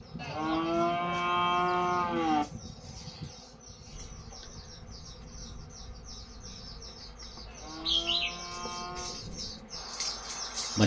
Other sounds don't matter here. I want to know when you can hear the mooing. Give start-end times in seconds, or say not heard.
0.1-2.5, 7.5-9.2.